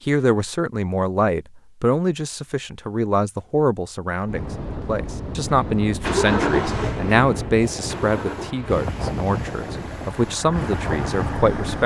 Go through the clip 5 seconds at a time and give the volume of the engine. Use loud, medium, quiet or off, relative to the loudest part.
off, loud, medium.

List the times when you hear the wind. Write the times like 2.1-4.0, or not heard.
4.2-11.8.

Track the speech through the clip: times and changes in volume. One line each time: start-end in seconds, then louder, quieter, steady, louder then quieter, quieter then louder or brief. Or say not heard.
0.1-11.8 steady.